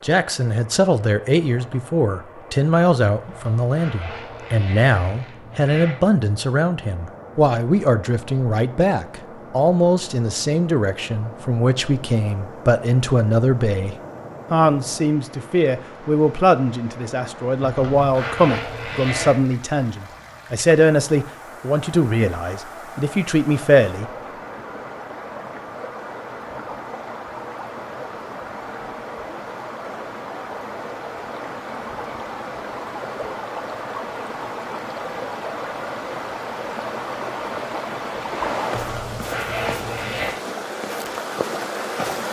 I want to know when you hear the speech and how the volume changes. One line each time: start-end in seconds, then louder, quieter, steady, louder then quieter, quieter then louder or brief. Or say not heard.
0.0-24.1 steady.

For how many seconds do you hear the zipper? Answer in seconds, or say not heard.
6 s.